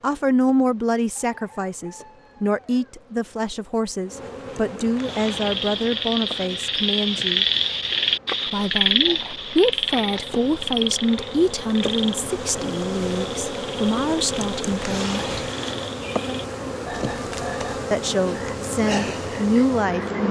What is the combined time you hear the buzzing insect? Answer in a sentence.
You can hear the buzzing insect for 20 seconds altogether.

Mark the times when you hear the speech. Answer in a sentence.
The speech can be heard from 0.0 to 7.5 s, from 8.5 to 15.2 s and from 17.9 to 20.2 s.